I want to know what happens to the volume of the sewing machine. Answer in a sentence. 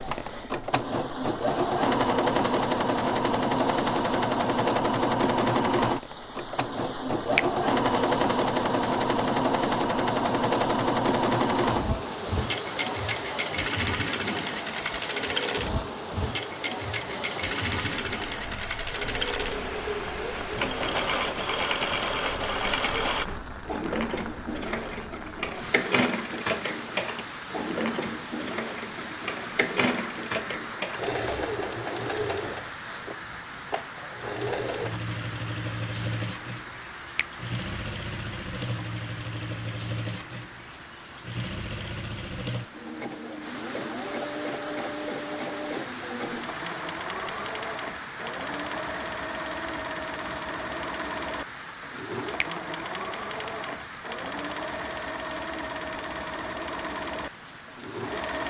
The volume of the sewing machine goes down.